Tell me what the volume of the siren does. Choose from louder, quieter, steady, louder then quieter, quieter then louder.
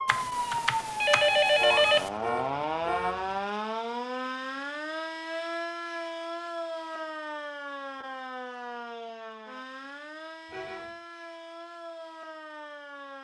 quieter.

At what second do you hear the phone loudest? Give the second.
2 s.